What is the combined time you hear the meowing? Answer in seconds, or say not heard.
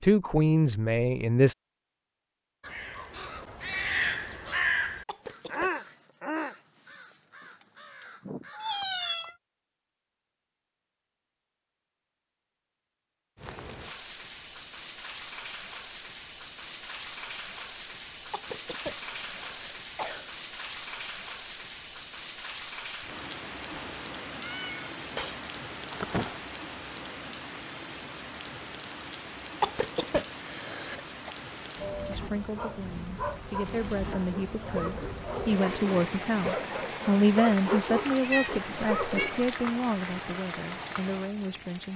5 s.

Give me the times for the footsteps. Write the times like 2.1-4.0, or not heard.
not heard.